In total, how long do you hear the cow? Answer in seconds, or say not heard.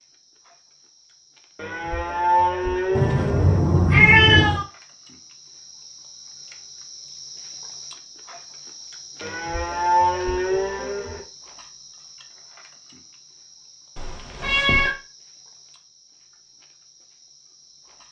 4 s.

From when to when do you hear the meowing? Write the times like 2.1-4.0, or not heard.
3.0-4.7, 13.9-14.9.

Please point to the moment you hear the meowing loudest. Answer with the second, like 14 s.
4 s.